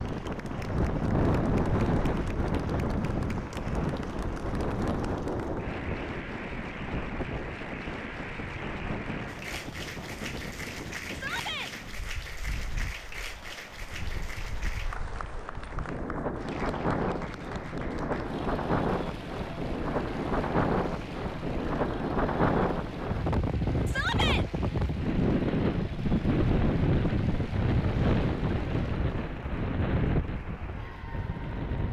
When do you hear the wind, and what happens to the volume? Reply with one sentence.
You can hear the wind from 0.0 to 31.8 s, getting quieter then louder.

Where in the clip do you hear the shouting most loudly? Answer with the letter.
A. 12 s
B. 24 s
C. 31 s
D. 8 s
B.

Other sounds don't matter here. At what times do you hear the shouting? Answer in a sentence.
You can hear the shouting from 11.1 to 11.7 s and from 23.9 to 24.4 s.